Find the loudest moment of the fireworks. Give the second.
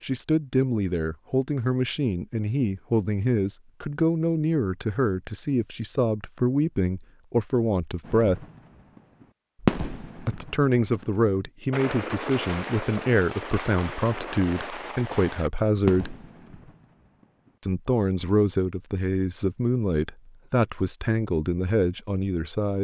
10 s.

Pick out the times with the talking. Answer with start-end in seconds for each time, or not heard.
0.0-8.4, 10.2-16.1, 17.6-22.7.